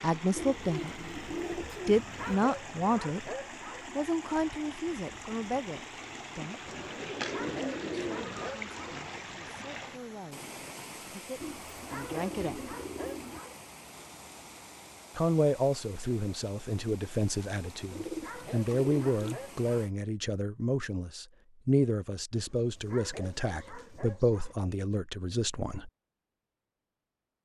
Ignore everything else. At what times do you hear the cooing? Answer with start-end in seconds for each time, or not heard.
0.3-2.4, 6.7-8.5, 11.4-13.4, 17.9-19.4, 22.4-24.6.